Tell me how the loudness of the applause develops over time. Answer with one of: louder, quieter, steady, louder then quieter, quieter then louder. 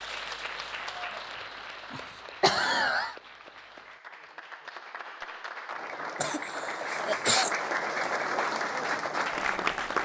quieter then louder.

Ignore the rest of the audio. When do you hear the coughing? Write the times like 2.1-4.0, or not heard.
1.9-3.1, 6.2-7.5.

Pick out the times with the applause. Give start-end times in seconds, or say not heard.
0.0-9.9.